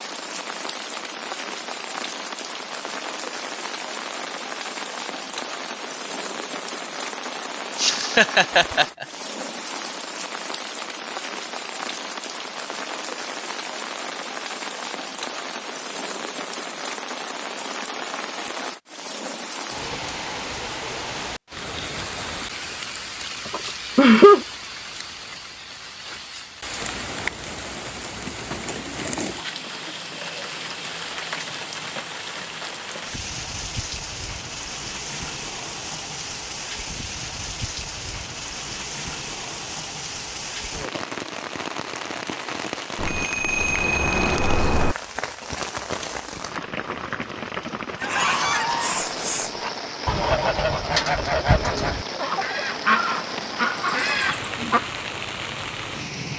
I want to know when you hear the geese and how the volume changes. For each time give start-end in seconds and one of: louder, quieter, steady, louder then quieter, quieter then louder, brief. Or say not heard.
48.0-55.0 steady.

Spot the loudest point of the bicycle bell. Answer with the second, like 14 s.
44 s.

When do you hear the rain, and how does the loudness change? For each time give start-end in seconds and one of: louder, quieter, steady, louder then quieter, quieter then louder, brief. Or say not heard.
0.0-56.3 steady.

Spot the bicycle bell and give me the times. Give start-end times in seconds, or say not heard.
43.0-45.0.